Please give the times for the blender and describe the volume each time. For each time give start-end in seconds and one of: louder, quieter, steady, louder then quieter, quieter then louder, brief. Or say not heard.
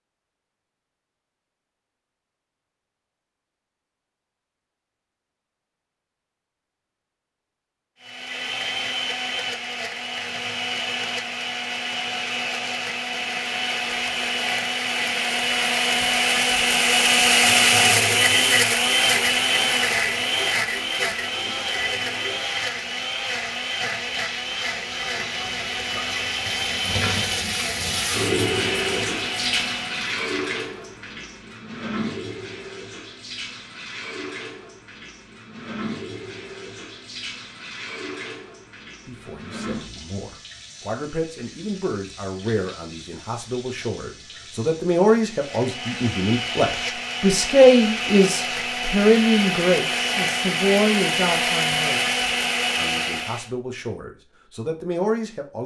8.0-30.1 louder then quieter
45.3-53.5 louder.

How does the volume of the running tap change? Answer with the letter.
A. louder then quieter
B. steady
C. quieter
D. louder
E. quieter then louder
A.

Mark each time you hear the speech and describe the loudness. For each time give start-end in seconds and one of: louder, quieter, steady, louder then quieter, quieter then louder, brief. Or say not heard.
39.0-55.6 louder then quieter.